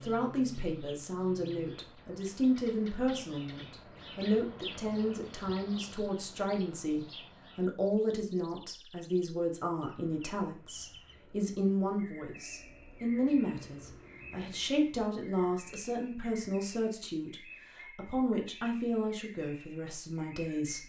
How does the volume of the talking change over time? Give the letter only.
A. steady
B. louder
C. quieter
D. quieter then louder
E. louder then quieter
A.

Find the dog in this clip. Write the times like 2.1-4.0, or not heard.
not heard.